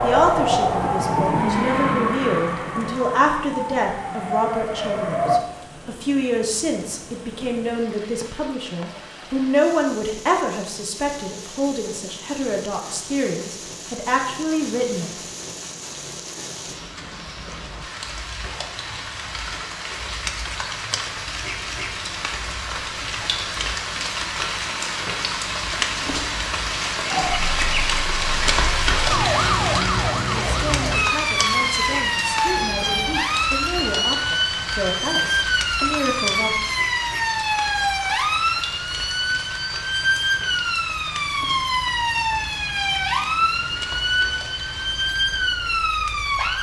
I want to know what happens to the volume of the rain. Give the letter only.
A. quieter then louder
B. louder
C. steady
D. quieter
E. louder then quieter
E.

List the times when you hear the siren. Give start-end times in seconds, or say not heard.
0.0-5.5, 27.1-46.5.